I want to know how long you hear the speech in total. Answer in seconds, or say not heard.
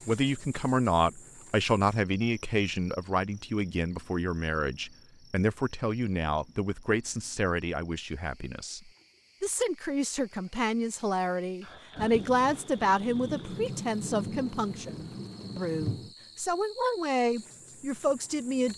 19 s.